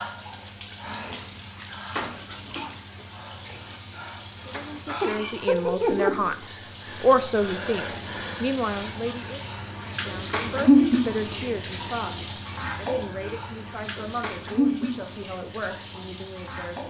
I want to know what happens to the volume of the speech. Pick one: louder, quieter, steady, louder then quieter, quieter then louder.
quieter.